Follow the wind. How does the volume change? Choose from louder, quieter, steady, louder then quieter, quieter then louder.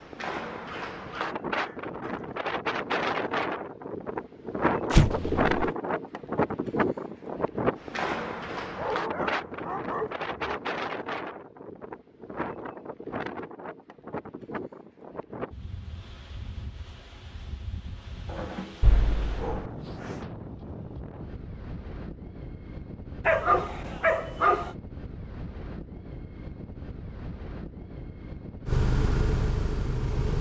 quieter.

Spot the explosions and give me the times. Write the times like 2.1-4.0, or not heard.
4.9-5.7, 18.8-19.6.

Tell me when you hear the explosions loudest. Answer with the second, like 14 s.
5 s.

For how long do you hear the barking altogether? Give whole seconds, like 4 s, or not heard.
7 s.